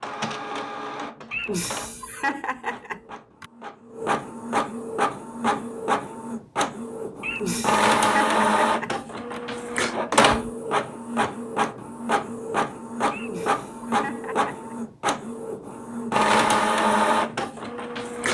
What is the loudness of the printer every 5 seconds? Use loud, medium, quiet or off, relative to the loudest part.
medium, loud, loud, loud.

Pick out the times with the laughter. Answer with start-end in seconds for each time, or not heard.
1.3-3.5, 7.2-9.4, 13.1-14.7.